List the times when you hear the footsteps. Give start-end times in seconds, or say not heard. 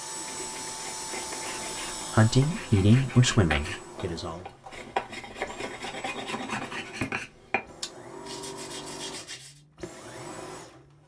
not heard.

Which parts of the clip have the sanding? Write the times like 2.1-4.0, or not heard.
0.0-9.6.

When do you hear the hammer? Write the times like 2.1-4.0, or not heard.
not heard.